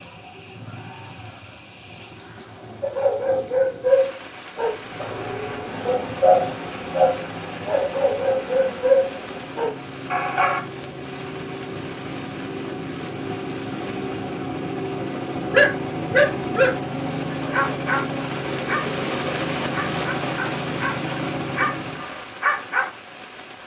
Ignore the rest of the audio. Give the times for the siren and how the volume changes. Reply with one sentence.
The siren can't be heard in this clip.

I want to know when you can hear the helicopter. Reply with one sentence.
The helicopter can be heard from 4.7 to 22.1 s.